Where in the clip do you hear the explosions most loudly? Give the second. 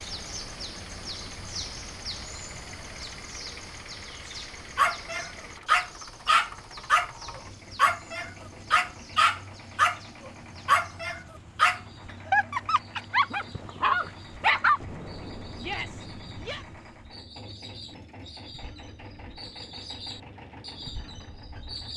15 s.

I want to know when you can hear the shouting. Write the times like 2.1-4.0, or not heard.
15.6-16.6.